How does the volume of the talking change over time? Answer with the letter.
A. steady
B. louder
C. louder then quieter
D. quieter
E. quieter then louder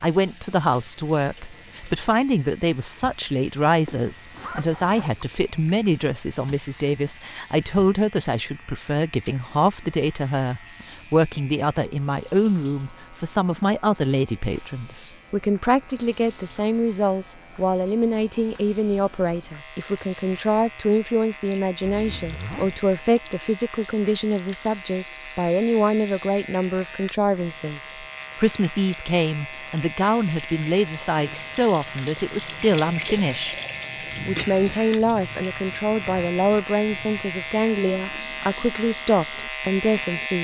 A.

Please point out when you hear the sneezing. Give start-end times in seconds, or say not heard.
33.9-34.6.